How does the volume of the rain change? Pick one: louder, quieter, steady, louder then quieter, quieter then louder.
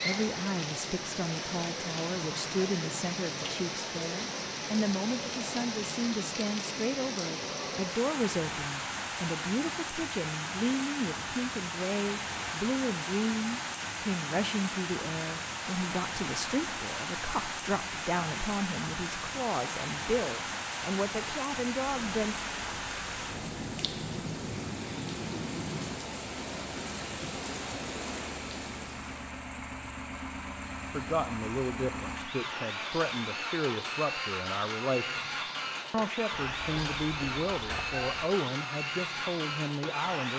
steady.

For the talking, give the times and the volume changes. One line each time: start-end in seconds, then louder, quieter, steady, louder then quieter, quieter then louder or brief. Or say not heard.
0.0-22.4 steady
30.9-40.3 steady.